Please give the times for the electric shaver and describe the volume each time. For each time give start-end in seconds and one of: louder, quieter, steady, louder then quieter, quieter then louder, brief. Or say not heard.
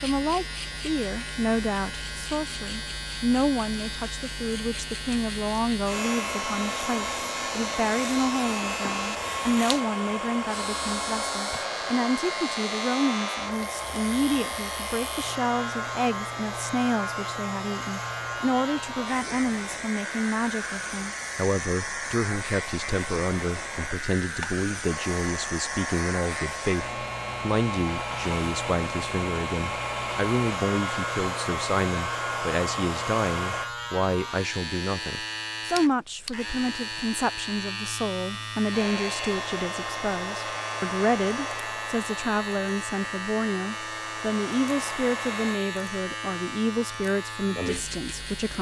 0.0-48.5 steady.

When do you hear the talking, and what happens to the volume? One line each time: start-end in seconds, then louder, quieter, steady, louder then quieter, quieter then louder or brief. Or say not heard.
0.0-48.5 steady.